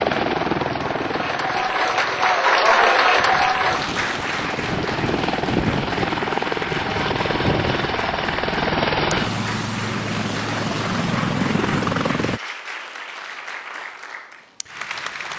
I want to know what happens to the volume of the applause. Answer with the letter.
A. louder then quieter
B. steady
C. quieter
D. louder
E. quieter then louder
C.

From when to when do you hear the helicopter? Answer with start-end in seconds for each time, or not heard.
0.0-12.4.